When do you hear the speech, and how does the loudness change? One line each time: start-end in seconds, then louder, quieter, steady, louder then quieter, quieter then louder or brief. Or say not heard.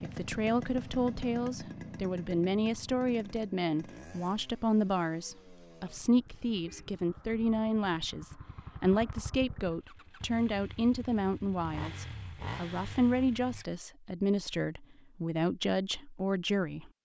0.0-16.9 steady.